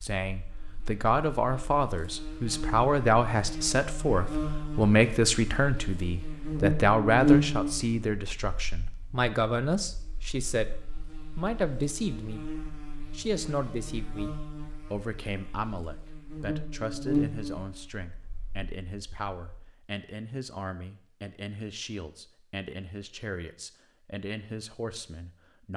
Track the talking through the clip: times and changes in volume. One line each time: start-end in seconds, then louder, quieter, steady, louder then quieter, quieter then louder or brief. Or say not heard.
0.0-25.7 quieter.